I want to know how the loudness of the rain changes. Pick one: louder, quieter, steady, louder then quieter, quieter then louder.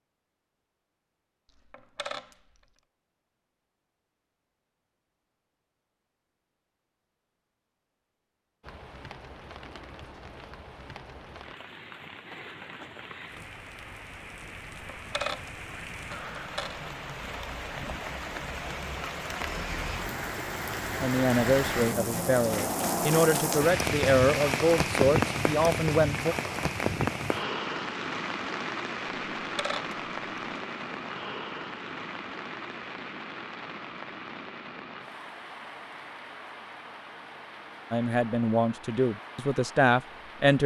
louder then quieter.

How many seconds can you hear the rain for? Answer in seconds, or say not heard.
32 s.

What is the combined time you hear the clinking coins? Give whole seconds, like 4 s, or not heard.
4 s.